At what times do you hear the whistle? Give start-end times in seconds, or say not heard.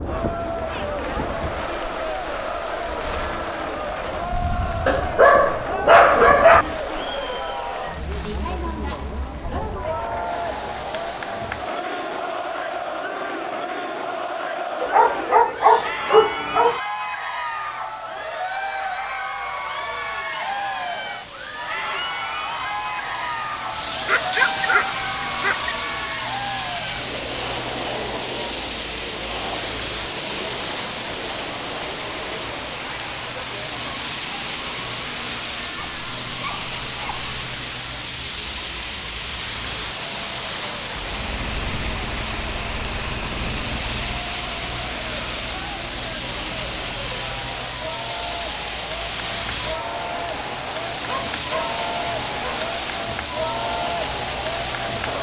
not heard.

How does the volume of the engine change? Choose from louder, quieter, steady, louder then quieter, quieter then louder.
quieter.